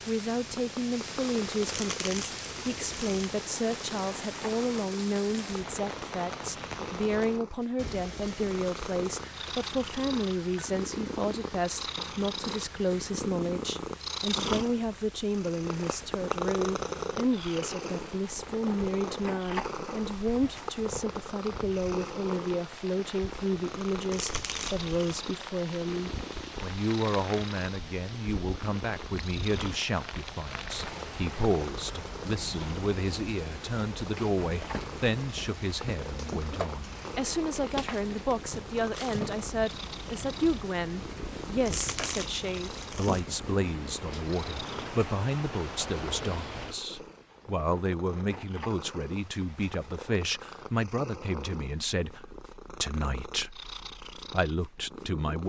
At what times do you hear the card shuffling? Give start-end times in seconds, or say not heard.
1.6-3.4, 24.1-25.1, 41.6-43.2.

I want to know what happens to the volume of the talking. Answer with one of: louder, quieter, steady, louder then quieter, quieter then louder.
steady.